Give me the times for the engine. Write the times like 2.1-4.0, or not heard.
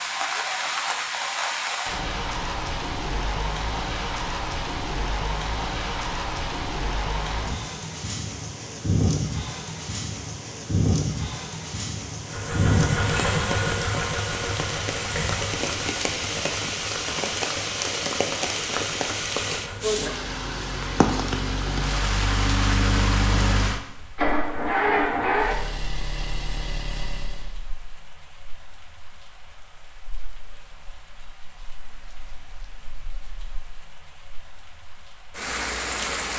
12.2-27.6.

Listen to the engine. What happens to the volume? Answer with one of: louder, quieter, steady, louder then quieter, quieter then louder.
quieter then louder.